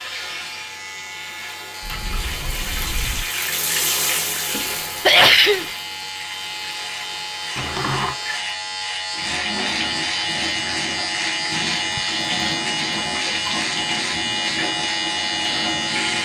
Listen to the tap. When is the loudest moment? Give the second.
4 s.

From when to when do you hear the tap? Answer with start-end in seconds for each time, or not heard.
0.0-16.1.